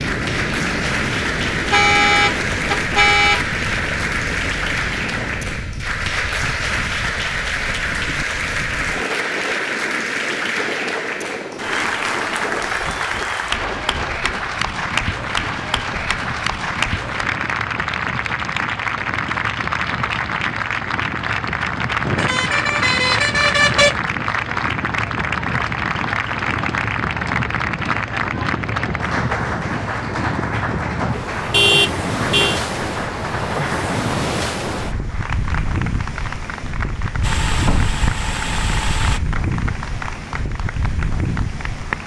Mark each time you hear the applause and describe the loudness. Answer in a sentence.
You can hear the applause from 0.0 to 42.0 s, getting quieter.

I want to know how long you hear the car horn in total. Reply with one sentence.
The car horn can be heard for 5 seconds in total.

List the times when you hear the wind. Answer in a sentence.
The wind can be heard from 0.0 to 42.0 s.